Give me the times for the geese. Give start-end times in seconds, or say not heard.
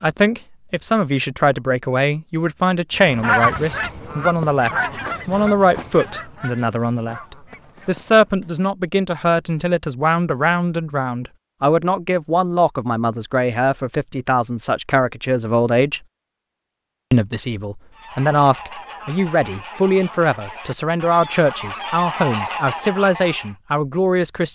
2.9-8.5, 17.9-23.6.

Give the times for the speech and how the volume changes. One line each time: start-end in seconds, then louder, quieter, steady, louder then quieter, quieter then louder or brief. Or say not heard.
0.0-16.0 steady
17.1-24.5 steady.